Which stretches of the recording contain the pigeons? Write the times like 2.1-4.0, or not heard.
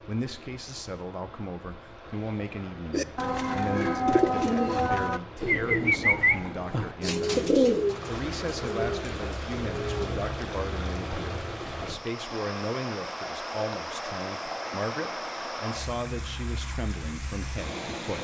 2.9-10.2.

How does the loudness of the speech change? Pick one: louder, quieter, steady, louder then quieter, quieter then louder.
steady.